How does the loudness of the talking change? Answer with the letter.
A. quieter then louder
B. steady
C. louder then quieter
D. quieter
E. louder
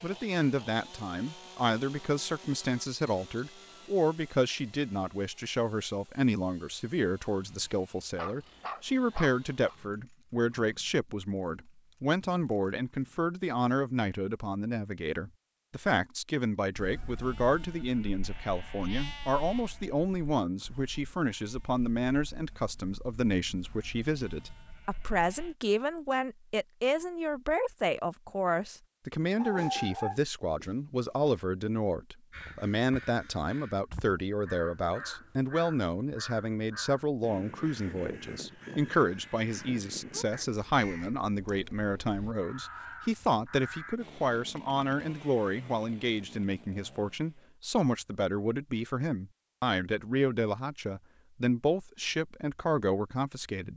B.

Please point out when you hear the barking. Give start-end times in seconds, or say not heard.
8.2-9.8, 29.4-31.4.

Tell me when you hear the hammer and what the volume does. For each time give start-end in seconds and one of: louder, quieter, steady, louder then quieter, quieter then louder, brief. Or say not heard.
not heard.